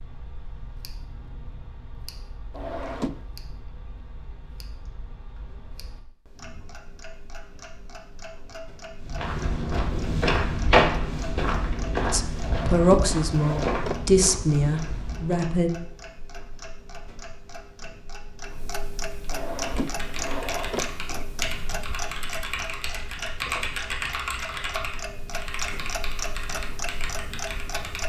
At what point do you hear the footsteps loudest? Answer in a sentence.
The volume of the footsteps peaks at 11 seconds.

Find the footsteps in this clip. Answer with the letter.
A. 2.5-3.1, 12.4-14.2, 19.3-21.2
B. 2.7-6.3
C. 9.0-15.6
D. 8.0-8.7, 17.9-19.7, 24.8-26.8
C.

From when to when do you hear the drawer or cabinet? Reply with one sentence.
The drawer or cabinet can be heard from 2.5 to 3.1 s, from 12.4 to 14.2 s and from 19.3 to 21.2 s.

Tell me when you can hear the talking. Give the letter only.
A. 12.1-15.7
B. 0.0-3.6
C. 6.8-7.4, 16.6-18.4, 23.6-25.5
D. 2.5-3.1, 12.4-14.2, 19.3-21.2
A.